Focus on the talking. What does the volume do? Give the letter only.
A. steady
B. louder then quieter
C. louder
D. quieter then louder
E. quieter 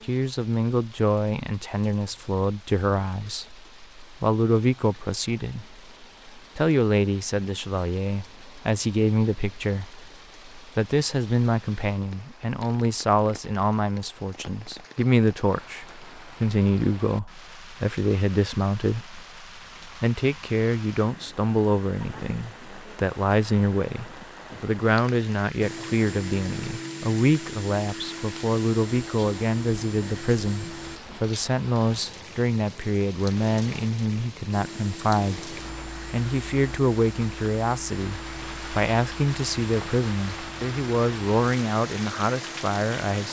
A.